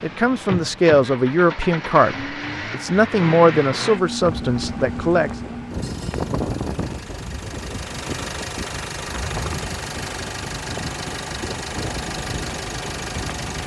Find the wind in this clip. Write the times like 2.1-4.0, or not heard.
4.2-13.6.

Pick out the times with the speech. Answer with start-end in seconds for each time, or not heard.
0.0-5.3.